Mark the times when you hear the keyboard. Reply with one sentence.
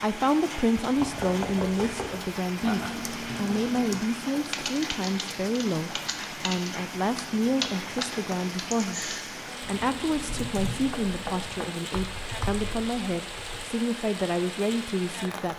You can hear the keyboard from 2.6 to 13.7 s.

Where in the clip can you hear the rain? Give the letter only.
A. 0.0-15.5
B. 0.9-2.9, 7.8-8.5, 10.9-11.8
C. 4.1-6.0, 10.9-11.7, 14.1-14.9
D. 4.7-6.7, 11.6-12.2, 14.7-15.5
A.